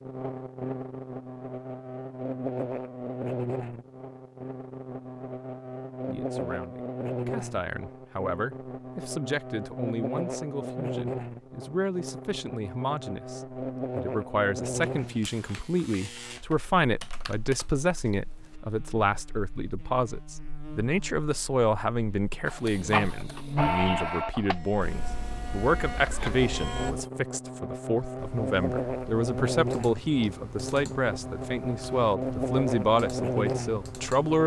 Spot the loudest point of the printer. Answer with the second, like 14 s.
23 s.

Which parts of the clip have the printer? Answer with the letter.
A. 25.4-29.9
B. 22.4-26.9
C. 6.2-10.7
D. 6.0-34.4
B.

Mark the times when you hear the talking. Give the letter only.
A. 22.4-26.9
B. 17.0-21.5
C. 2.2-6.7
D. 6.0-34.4
D.